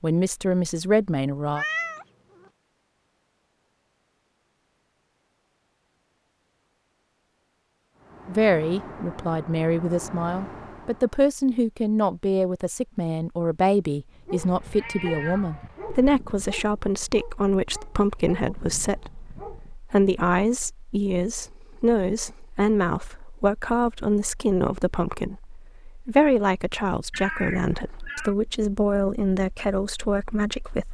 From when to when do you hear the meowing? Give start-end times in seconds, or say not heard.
1.4-2.5, 14.3-16.1, 27.1-28.4.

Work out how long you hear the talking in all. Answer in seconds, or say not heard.
24 s.